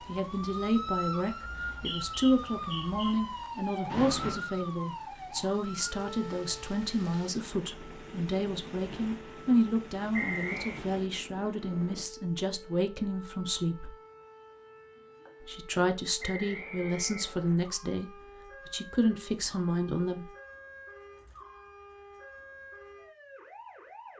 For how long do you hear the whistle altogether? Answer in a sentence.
You can hear the whistle for 4 seconds altogether.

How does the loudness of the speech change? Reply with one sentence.
The loudness of the speech stays about the same.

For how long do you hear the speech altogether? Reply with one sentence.
You can hear the speech for 19 seconds altogether.